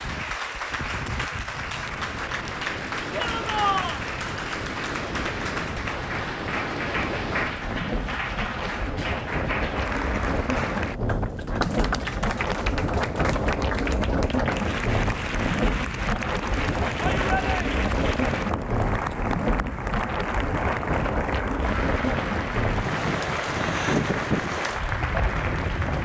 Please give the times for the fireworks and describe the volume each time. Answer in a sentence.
You can't hear the fireworks here.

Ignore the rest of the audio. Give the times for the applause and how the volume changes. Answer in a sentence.
You can hear the applause from 0.0 to 26.0 s, at a steady volume.